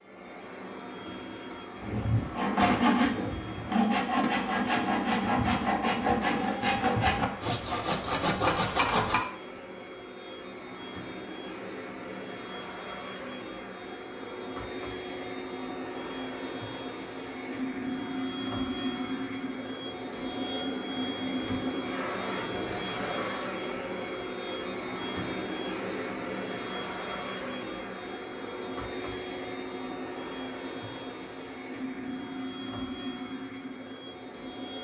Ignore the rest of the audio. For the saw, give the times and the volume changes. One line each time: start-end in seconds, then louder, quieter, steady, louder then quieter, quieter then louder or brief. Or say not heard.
1.8-9.2 steady.